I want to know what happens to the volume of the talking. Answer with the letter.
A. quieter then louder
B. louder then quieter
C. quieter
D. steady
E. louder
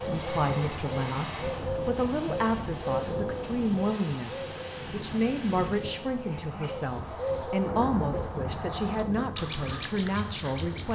D.